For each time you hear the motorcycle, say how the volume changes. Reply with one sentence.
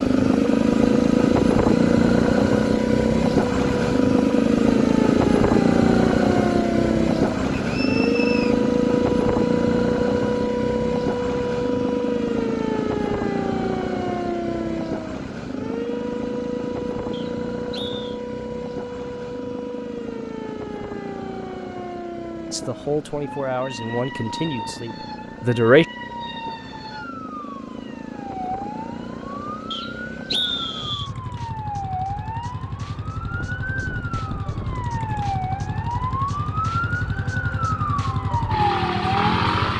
You can hear the motorcycle from 0.0 to 39.7 s, getting quieter then louder.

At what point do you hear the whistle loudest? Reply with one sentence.
The loudest moment of the whistle is at 30 seconds.